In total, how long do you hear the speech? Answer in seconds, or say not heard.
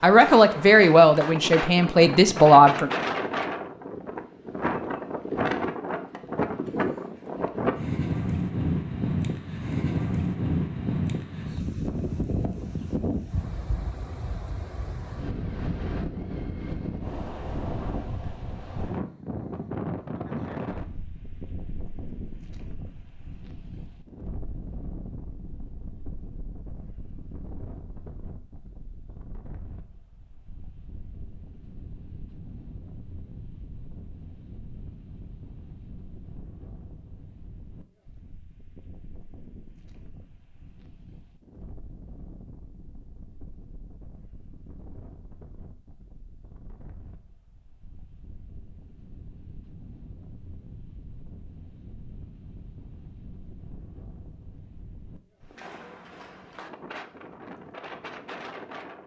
3 s.